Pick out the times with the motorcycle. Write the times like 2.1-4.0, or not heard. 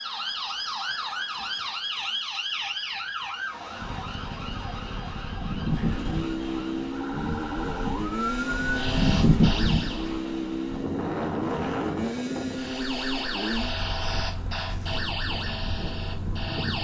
3.8-16.6.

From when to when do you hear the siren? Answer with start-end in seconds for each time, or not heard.
0.0-10.1, 12.5-16.8.